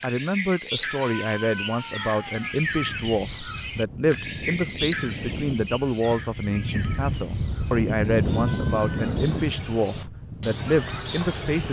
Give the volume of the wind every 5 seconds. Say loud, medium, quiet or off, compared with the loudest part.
medium, loud, medium.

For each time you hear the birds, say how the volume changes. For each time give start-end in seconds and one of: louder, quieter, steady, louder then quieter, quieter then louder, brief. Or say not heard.
0.0-11.6 quieter then louder.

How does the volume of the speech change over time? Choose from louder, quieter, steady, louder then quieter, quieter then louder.
steady.